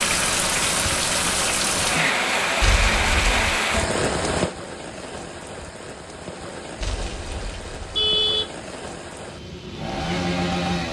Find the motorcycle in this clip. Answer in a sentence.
You can hear the motorcycle from 9.2 to 10.8 s.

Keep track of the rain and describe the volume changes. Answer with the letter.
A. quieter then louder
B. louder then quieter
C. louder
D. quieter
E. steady
D.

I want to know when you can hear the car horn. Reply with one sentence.
The car horn can be heard from 2.6 to 3.6 s and from 6.8 to 8.4 s.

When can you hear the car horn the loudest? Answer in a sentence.
The loudest moment of the car horn is at 8 seconds.